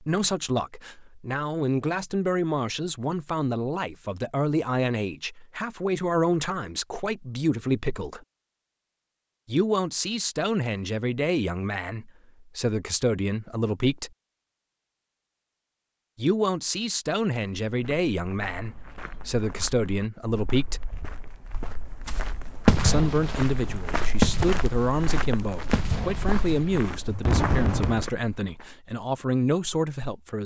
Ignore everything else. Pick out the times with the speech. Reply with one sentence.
You can hear the speech from 0.0 to 8.2 s, from 9.4 to 14.1 s, from 16.1 to 20.8 s and from 22.8 to 30.4 s.